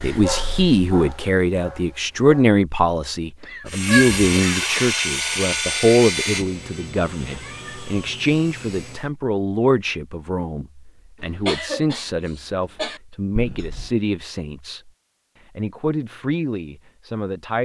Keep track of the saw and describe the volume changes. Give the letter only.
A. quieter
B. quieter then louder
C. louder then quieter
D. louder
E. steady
A.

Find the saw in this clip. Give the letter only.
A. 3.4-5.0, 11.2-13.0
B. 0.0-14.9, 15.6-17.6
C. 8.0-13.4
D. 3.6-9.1
D.